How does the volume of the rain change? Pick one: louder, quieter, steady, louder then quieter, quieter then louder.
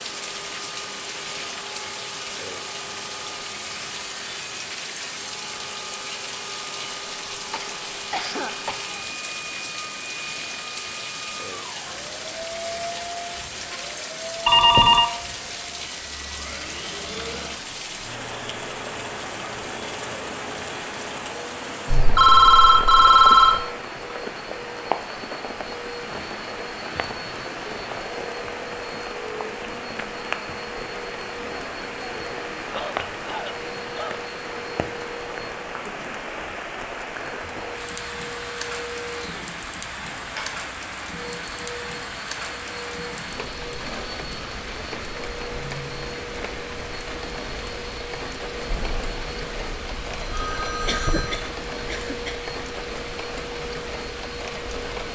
steady.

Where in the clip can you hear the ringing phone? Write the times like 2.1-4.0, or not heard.
14.4-15.1, 21.9-23.6, 48.6-51.4.